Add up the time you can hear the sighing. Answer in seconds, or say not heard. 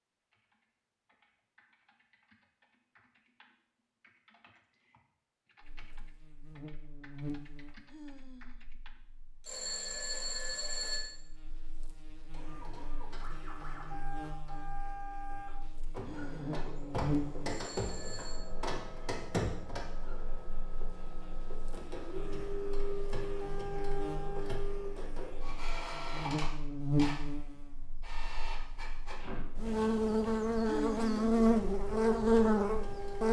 2 s.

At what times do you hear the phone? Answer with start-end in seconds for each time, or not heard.
9.4-11.2, 17.5-18.4.